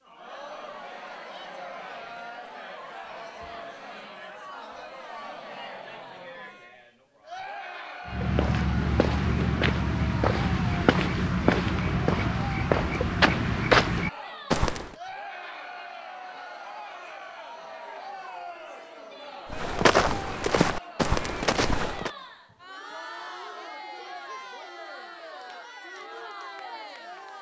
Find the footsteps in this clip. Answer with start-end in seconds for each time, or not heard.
8.1-14.9, 19.5-22.1.